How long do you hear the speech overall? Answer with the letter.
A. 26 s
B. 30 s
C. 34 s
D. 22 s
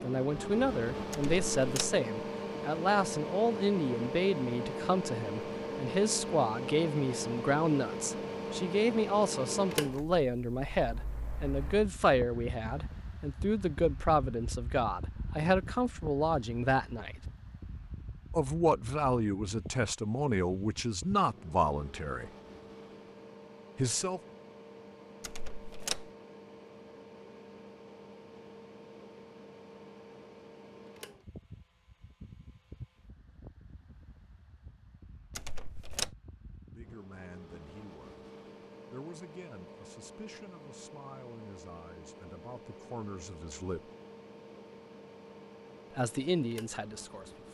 B.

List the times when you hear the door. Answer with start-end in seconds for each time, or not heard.
1.1-2.0, 25.2-26.1, 35.4-36.1.